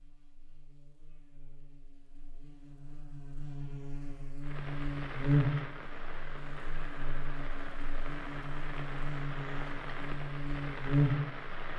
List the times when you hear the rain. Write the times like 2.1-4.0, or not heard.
4.4-11.7.